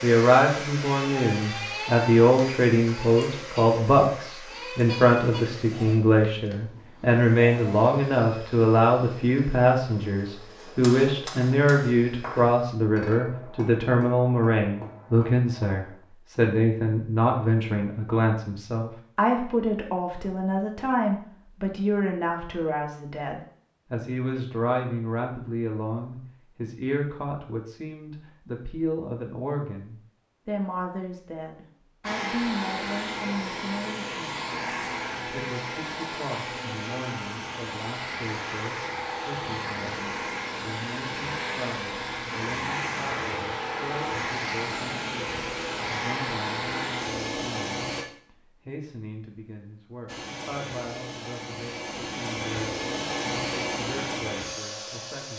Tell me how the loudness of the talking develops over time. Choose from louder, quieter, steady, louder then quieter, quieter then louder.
quieter.